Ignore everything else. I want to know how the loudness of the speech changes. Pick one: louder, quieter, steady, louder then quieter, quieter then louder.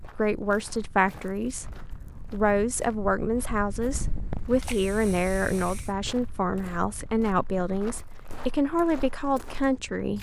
steady.